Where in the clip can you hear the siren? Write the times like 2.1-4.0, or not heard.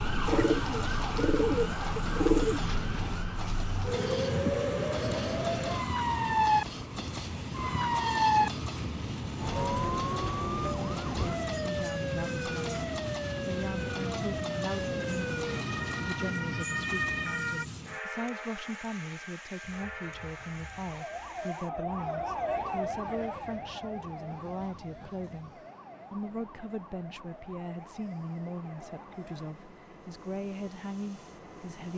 0.0-17.6, 19.6-29.6.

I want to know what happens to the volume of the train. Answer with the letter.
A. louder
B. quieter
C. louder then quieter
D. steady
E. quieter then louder
B.